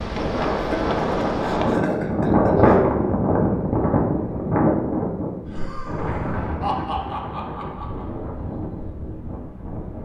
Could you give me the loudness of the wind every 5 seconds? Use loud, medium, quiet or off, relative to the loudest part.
loud, medium.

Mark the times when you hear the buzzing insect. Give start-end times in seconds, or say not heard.
0.0-1.8.